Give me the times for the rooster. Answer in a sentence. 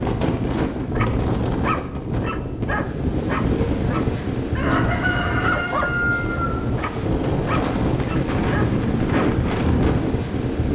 The rooster can be heard from 4.5 to 6.5 s.